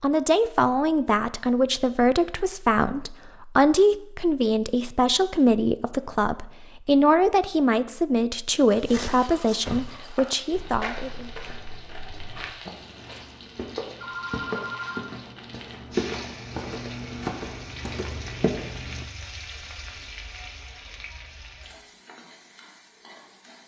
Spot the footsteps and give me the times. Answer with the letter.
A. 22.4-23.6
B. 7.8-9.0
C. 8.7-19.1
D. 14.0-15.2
C.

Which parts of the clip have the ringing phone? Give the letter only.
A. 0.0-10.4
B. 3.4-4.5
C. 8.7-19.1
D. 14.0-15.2
D.